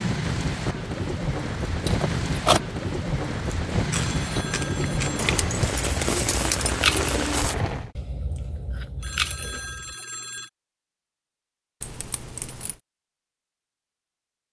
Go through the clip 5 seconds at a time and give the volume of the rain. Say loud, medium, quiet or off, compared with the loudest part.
loud, loud, off.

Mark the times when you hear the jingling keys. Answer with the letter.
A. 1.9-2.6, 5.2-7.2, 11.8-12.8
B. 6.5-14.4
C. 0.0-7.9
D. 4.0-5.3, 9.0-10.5
A.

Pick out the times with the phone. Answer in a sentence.
The phone can be heard from 4.0 to 5.3 s and from 9.0 to 10.5 s.